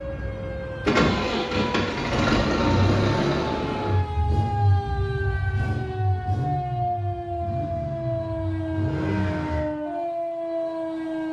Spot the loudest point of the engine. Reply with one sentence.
The loudest moment of the engine is at 3 seconds.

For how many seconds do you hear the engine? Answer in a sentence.
You can hear the engine for 10 seconds altogether.